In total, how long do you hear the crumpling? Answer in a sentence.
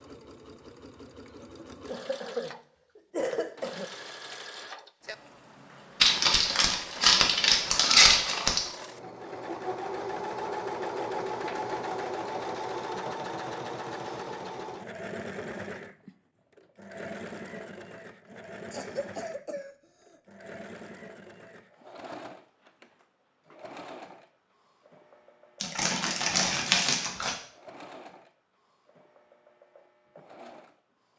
You can hear the crumpling for 4 seconds altogether.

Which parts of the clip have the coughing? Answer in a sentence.
The coughing can be heard from 1.9 to 3.9 s and from 18.7 to 20.2 s.